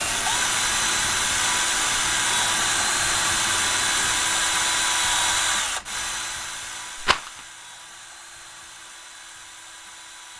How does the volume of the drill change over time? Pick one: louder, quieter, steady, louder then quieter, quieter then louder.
quieter.